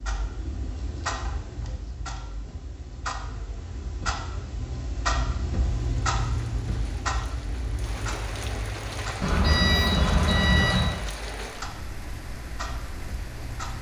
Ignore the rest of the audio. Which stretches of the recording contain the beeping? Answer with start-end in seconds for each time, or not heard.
9.2-10.9.